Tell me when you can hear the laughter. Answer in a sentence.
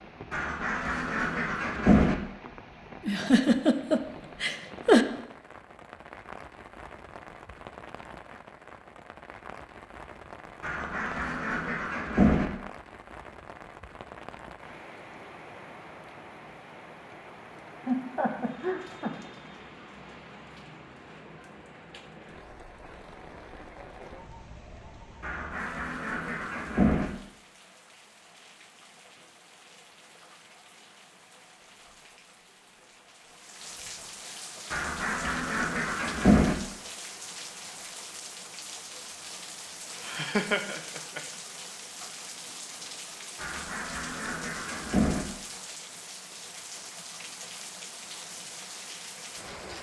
The laughter can be heard from 3.0 to 5.0 s, from 17.9 to 19.1 s and from 40.0 to 41.2 s.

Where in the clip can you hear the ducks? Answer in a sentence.
The ducks can be heard from 0.3 to 2.1 s, from 10.6 to 12.5 s, from 25.2 to 27.1 s, from 34.7 to 36.5 s and from 43.4 to 45.2 s.